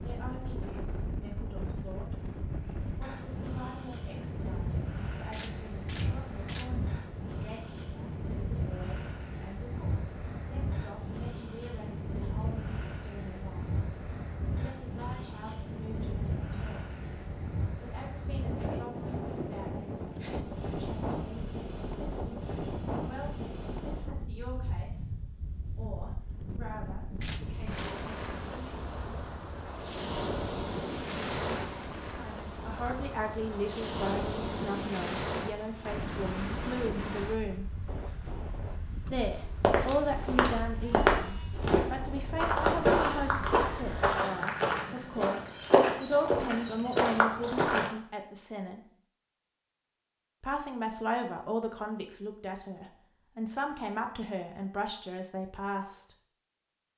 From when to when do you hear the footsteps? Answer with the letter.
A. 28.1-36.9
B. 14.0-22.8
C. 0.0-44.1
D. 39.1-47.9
D.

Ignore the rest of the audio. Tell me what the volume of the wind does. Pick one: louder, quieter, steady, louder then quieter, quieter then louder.
steady.